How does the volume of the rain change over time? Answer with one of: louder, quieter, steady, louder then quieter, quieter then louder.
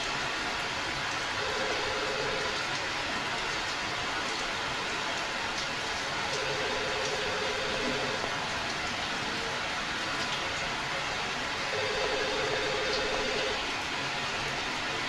steady.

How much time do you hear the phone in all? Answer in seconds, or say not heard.
5 s.